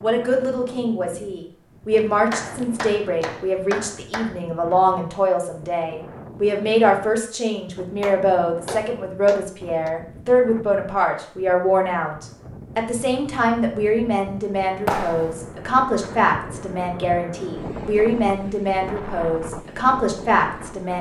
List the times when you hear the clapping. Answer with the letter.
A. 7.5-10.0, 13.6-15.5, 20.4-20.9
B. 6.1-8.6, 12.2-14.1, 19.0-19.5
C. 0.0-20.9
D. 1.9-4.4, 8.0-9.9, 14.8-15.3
D.